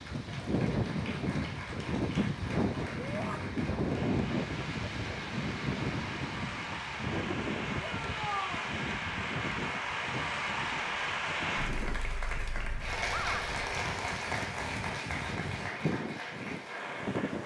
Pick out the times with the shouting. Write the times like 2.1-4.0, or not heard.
3.0-3.4, 7.8-8.7, 13.1-13.5.